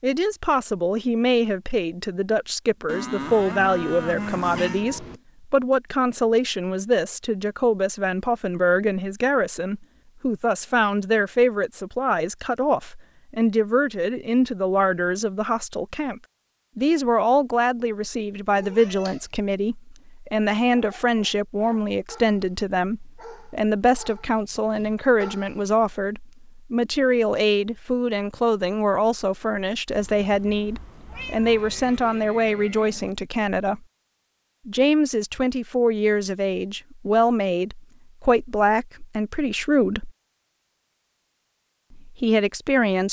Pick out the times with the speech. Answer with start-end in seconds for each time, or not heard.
0.0-33.8, 34.6-40.1, 41.9-43.0.